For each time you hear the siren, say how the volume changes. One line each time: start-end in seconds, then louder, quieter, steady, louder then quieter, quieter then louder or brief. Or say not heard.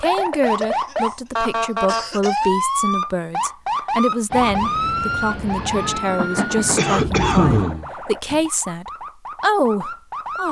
0.0-10.4 quieter.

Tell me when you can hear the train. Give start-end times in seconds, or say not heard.
4.3-7.6.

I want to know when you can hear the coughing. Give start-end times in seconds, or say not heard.
0.5-2.6, 6.8-8.4.